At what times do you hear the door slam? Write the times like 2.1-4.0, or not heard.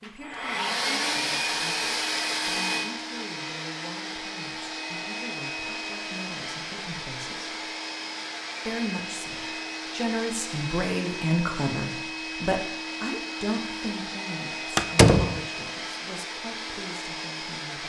14.8-15.4.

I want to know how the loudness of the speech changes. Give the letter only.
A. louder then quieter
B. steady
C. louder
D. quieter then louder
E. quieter
A.